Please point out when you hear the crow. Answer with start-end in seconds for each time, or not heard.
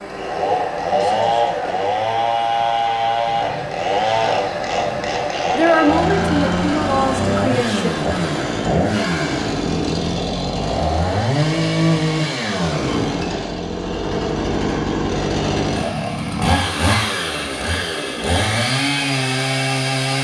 not heard.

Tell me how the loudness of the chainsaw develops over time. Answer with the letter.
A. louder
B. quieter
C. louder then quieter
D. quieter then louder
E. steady
E.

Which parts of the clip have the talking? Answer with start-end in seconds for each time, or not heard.
5.5-8.1.